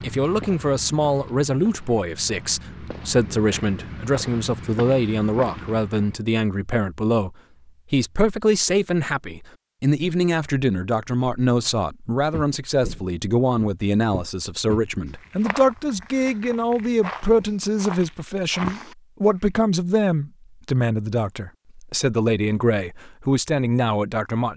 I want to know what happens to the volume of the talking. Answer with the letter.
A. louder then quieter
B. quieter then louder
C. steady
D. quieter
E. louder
C.